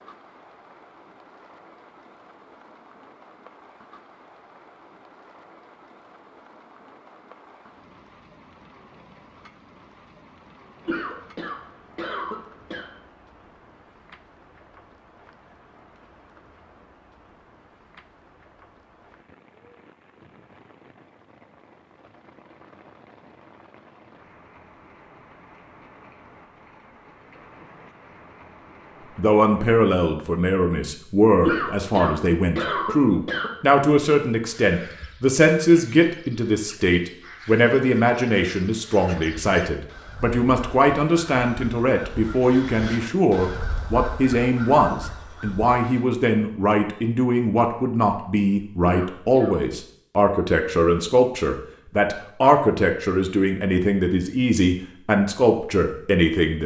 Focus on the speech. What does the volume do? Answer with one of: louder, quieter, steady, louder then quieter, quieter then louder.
steady.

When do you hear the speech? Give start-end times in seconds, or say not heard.
29.1-56.6.